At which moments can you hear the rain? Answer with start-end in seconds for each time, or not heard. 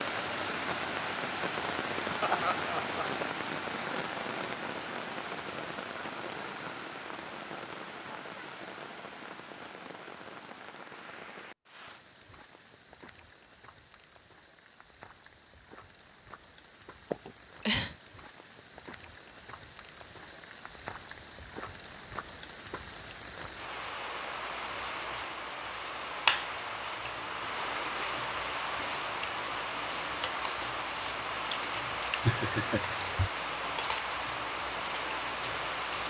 0.0-36.0.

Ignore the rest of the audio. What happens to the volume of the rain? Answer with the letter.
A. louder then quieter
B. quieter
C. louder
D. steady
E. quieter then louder
E.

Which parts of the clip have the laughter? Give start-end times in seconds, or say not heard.
2.2-3.3, 17.1-17.9, 32.2-33.3.